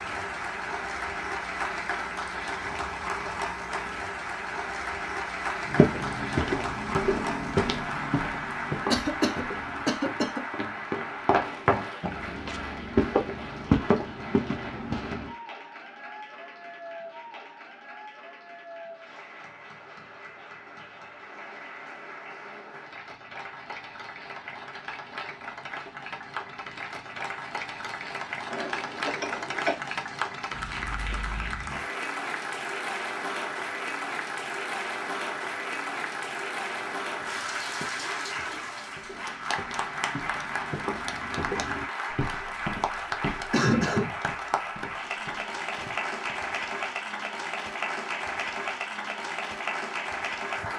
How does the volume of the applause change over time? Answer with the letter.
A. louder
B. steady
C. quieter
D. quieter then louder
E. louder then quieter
D.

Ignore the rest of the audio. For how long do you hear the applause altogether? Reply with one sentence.
The applause can be heard for 51 seconds in total.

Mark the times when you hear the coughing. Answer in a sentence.
The coughing can be heard from 8.9 to 10.4 s, from 28.5 to 29.8 s and from 43.5 to 44.1 s.